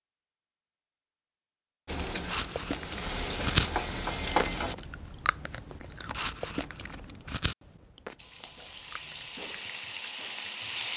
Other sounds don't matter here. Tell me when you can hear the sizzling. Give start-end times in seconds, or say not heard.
1.9-4.8, 8.2-10.9.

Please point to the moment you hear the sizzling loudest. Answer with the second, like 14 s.
4 s.